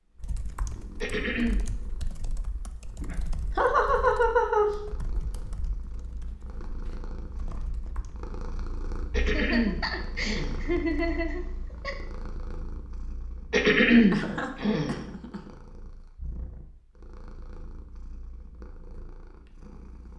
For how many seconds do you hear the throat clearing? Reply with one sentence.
The throat clearing can be heard for 4 seconds in total.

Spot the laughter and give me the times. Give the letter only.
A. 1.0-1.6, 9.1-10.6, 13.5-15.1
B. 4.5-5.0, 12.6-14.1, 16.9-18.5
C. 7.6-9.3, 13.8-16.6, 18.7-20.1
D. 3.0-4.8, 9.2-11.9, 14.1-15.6
D.